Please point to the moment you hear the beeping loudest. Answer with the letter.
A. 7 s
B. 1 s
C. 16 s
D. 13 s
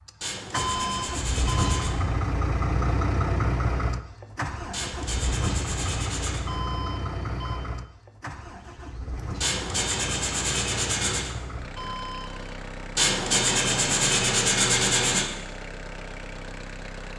B.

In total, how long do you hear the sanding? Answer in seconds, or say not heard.
8 s.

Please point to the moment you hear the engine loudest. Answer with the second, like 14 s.
3 s.